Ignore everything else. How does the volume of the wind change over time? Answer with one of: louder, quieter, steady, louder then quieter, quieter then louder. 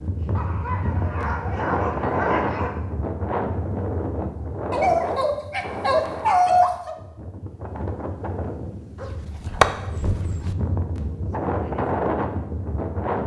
quieter then louder.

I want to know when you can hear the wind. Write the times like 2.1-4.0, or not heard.
0.0-13.2.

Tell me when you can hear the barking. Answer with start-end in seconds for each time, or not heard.
0.3-2.8, 4.7-7.0, 9.0-10.6.